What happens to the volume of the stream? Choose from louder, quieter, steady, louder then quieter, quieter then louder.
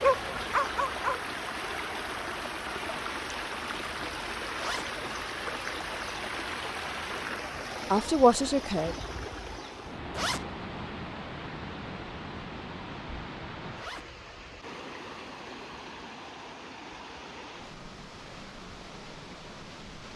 quieter.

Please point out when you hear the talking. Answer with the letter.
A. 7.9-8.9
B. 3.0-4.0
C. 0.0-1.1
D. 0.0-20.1
A.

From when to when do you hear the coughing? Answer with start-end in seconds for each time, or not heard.
not heard.